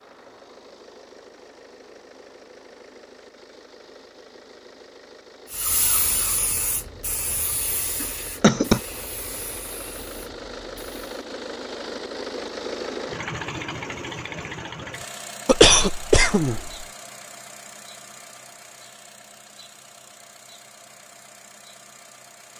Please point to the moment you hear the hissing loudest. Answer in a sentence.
The volume of the hissing peaks at 6 seconds.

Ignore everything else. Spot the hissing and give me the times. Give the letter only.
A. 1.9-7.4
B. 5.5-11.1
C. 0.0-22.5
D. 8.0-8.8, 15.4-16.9
B.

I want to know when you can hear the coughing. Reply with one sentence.
You can hear the coughing from 8.0 to 8.8 s and from 15.4 to 16.9 s.